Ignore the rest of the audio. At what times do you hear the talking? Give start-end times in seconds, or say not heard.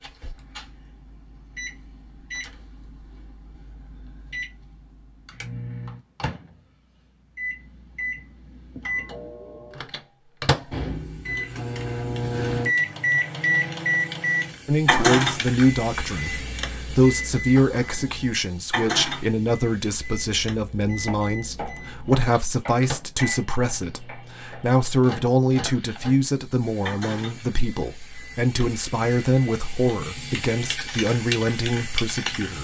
14.7-32.5.